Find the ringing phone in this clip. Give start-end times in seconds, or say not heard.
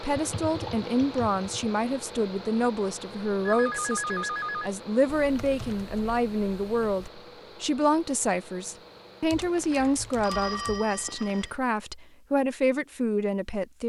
3.5-4.7, 9.3-11.5.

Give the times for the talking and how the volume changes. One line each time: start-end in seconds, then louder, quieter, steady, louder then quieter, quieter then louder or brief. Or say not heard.
0.0-13.8 steady.